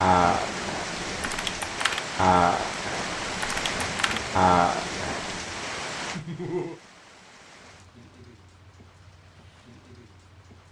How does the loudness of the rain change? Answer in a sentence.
The loudness of the rain goes down.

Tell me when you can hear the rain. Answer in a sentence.
You can hear the rain from 0.0 to 10.6 s.